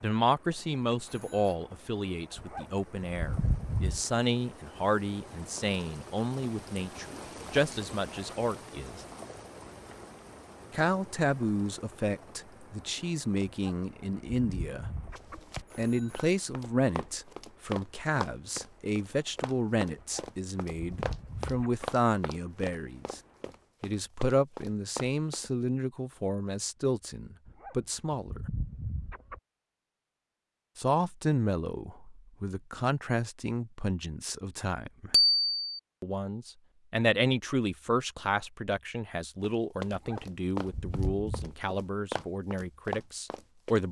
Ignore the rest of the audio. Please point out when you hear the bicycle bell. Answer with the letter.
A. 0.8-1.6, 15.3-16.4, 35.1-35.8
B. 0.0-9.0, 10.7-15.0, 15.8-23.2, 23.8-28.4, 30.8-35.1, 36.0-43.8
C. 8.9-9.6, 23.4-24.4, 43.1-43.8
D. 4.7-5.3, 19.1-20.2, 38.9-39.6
A.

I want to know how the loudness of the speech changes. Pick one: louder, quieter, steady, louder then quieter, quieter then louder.
steady.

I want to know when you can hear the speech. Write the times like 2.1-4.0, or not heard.
0.0-9.0, 10.7-15.0, 15.8-23.2, 23.8-28.4, 30.8-35.1, 36.0-43.8.